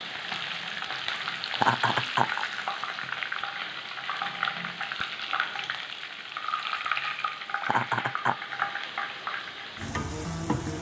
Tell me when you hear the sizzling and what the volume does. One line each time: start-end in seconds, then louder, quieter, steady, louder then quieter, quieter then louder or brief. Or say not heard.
0.0-10.7 steady.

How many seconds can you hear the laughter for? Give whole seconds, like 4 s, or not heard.
2 s.